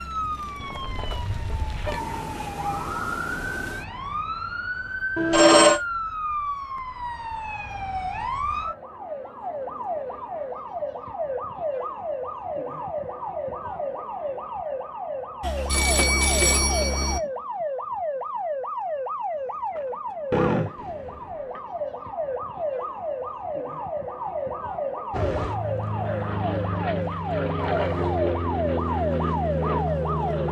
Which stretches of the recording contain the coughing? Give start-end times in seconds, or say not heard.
20.3-21.6.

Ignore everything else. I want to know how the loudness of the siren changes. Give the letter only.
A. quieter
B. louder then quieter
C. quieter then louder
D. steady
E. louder
D.